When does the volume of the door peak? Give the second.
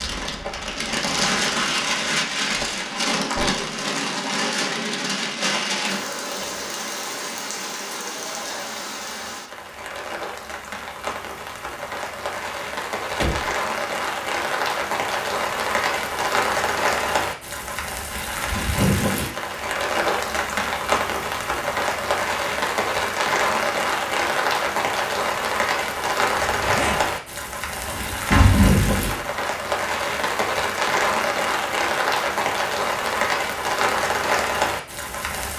28 s.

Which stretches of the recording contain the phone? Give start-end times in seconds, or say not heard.
not heard.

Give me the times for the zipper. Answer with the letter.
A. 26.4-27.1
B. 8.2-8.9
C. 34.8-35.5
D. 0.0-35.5
A.